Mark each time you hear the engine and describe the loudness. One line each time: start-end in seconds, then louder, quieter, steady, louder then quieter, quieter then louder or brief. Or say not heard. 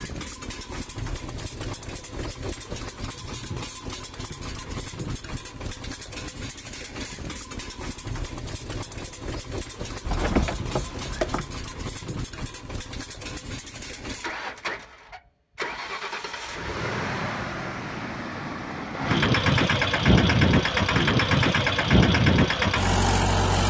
0.0-23.6 louder.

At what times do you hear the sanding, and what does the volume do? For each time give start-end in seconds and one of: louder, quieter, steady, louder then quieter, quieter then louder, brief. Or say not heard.
not heard.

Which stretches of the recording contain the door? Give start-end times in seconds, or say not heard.
10.1-11.4.